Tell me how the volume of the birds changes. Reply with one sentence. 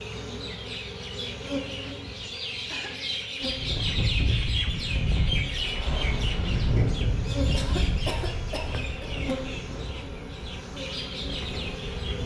The loudness of the birds goes up, then down.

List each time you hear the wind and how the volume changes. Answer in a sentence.
You can hear the wind from 3.4 to 12.2 s, getting quieter.